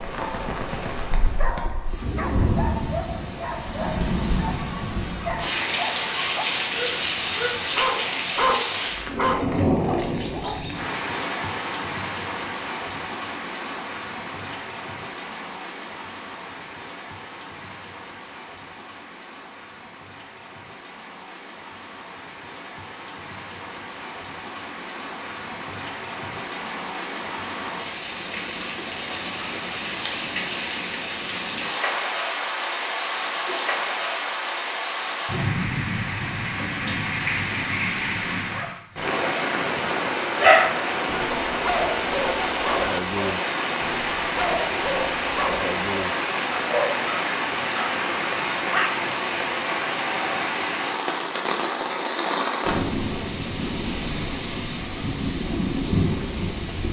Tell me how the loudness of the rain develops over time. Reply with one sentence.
The loudness of the rain goes down, then up.